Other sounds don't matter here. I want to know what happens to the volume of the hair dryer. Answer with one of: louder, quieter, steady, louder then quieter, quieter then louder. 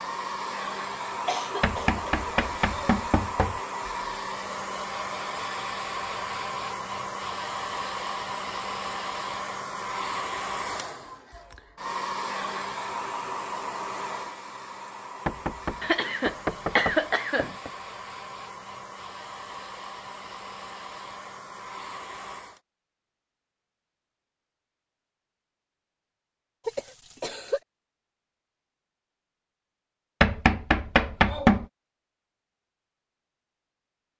quieter.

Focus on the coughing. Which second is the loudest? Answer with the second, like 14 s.
17 s.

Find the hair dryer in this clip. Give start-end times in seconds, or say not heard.
0.0-22.6.